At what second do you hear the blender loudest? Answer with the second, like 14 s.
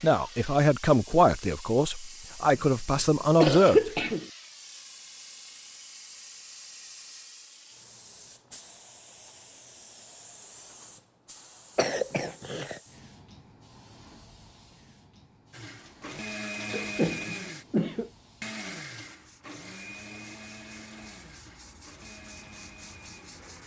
17 s.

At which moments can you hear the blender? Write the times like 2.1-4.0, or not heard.
15.5-23.6.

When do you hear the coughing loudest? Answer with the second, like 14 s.
4 s.